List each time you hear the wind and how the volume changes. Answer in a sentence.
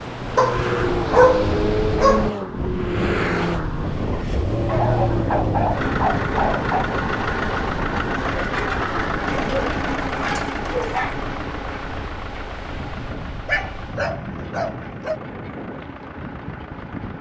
The wind can be heard from 0.0 to 17.1 s, getting quieter.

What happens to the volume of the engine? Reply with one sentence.
The loudness of the engine goes down.